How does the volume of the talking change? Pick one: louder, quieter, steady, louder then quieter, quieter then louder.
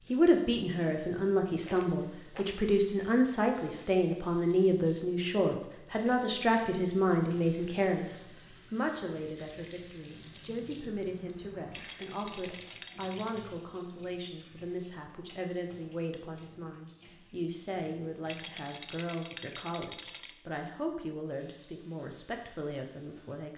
quieter.